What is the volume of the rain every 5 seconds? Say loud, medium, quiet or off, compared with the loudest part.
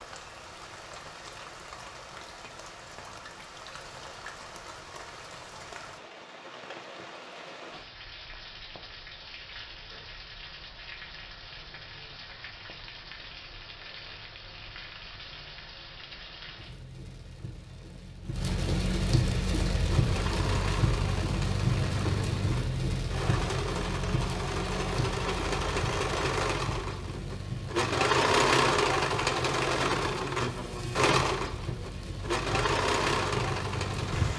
quiet, quiet, quiet, loud, loud, medium, medium.